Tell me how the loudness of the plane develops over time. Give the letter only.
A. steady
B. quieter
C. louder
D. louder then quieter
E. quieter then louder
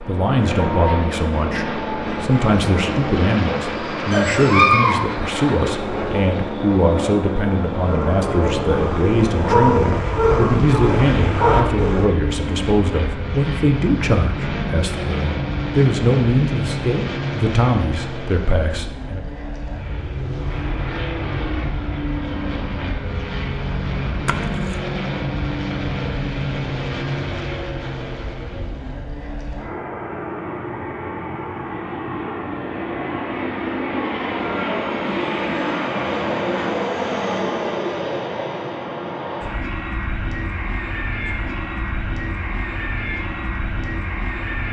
A.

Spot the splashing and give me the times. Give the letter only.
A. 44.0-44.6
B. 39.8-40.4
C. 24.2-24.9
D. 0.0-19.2
C.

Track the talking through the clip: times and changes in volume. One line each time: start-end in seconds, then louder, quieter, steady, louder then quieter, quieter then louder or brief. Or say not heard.
0.0-19.2 steady.